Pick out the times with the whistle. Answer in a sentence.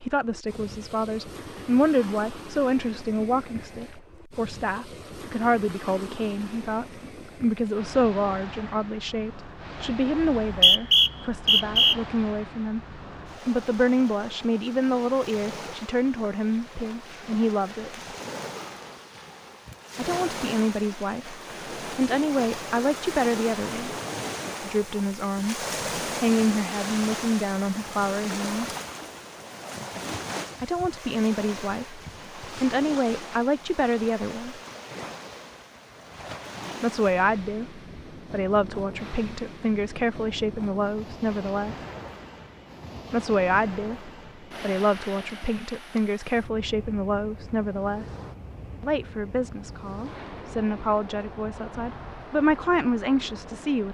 You can hear the whistle from 10.2 to 11.9 s.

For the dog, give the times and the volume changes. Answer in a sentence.
The dog can't be heard in this clip.